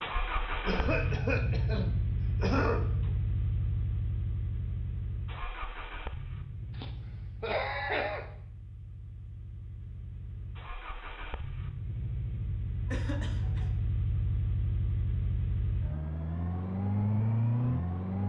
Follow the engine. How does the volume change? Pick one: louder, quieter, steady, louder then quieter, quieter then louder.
quieter then louder.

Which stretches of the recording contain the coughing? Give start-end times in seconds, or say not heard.
0.7-2.9, 6.7-8.2, 12.8-13.7.